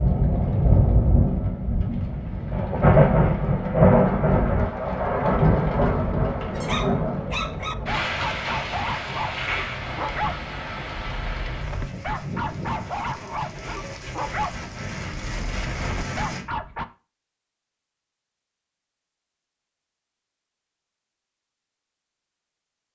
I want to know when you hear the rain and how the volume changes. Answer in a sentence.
You can hear the rain from 0.0 to 16.4 s, getting quieter.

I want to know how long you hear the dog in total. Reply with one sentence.
You can hear the dog for 10 seconds altogether.